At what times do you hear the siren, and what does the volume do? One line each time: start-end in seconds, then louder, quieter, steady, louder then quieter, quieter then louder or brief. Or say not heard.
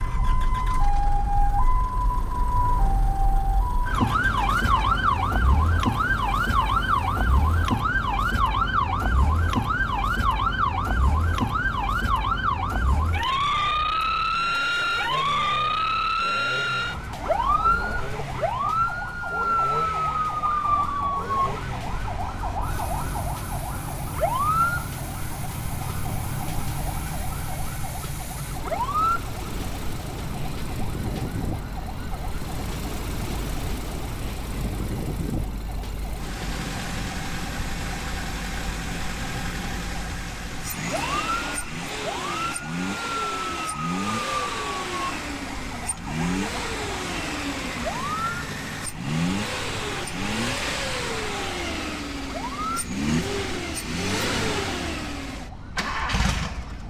0.0-56.8 quieter.